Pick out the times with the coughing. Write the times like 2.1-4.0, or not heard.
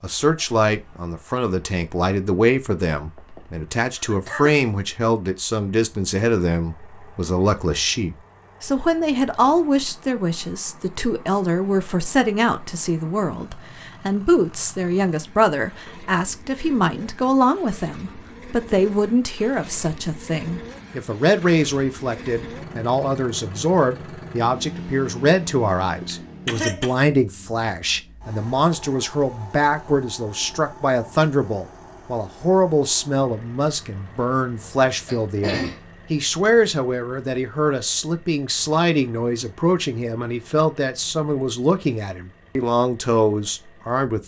3.0-4.6, 26.1-26.9, 34.0-35.8.